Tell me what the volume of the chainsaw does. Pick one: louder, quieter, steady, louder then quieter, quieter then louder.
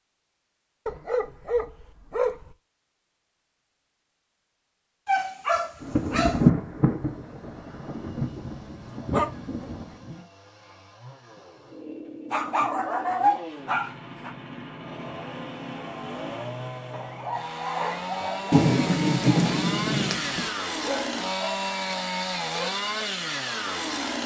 louder.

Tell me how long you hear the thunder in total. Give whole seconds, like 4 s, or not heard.
6 s.